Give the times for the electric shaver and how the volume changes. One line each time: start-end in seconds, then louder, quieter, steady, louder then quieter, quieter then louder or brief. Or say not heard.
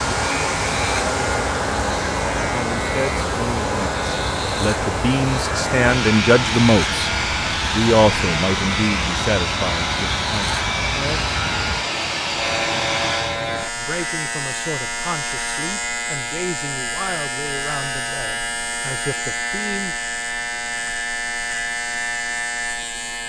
0.0-23.2 steady.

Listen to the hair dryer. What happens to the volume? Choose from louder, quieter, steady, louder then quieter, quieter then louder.
steady.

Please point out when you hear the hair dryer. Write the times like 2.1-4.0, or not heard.
0.0-13.4.